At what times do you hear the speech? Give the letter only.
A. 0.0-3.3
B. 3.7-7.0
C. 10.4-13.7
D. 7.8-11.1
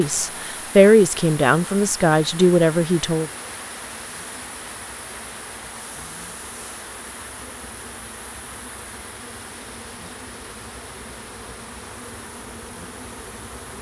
A.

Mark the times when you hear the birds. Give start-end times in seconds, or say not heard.
not heard.